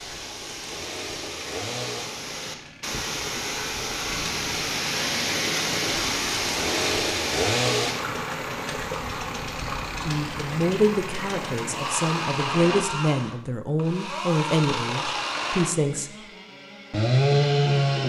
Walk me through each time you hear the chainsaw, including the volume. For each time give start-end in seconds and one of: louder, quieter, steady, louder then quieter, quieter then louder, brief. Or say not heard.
0.0-18.0 louder.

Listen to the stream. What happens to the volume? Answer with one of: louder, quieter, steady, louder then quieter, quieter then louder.
louder then quieter.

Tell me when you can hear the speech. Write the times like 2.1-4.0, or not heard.
10.0-16.1.